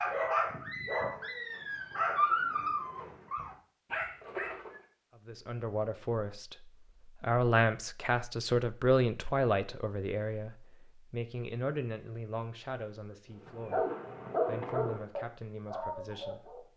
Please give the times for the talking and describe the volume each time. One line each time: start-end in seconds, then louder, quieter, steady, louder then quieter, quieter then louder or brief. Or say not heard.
5.2-13.8 louder then quieter
14.4-16.6 brief.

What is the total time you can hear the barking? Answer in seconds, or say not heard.
8 s.